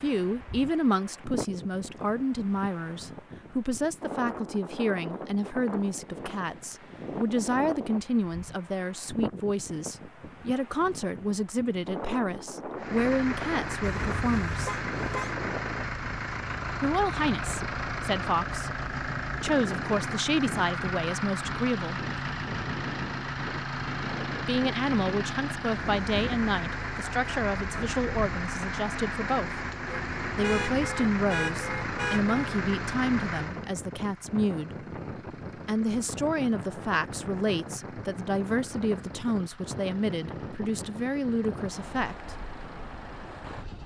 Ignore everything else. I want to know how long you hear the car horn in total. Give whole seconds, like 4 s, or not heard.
4 s.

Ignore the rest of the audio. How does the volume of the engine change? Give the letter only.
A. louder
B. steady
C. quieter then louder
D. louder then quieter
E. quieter
E.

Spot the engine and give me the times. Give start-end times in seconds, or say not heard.
12.8-43.8.